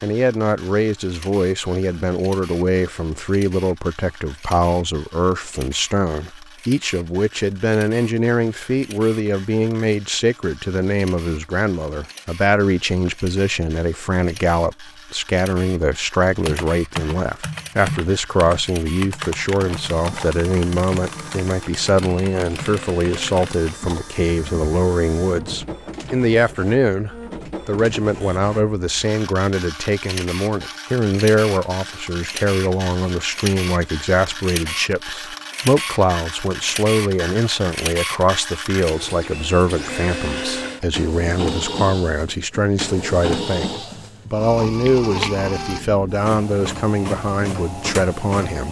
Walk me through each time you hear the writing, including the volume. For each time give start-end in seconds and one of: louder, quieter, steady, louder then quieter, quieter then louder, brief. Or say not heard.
not heard.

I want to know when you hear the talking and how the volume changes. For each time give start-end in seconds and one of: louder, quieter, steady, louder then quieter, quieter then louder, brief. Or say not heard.
0.0-48.6 steady.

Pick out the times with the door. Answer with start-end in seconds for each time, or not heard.
not heard.